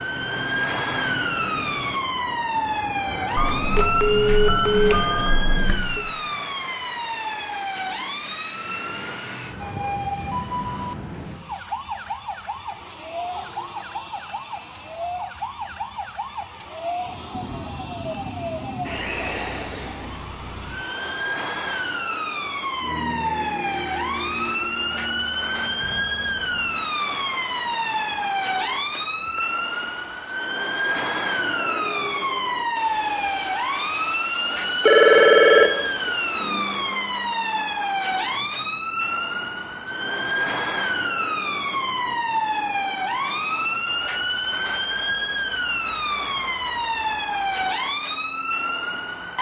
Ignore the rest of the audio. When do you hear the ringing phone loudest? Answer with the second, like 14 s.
35 s.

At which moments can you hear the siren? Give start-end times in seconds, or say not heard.
0.0-49.3.